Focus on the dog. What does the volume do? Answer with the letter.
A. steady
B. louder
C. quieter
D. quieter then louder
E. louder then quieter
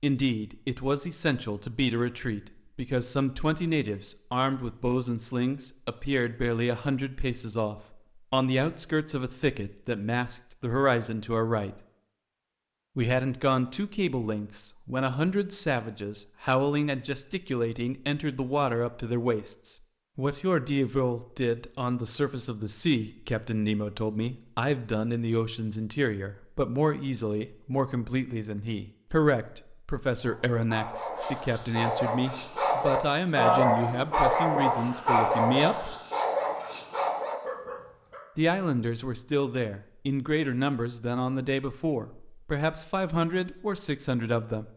E.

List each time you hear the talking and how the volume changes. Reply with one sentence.
The talking can be heard from 0.0 to 11.8 s, at a steady volume; from 12.9 to 36.0 s, at a steady volume; and from 38.4 to 44.7 s, at a steady volume.